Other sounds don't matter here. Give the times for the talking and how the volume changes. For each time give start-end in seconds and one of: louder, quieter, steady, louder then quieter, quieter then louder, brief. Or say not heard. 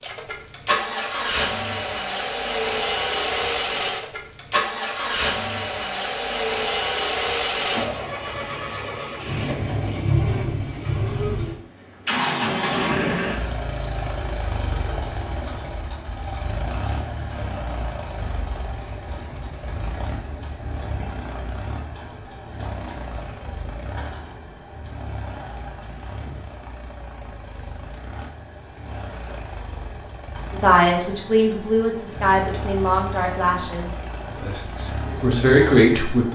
30.5-36.3 quieter then louder.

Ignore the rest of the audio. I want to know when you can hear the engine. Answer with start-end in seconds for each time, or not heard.
0.0-36.3.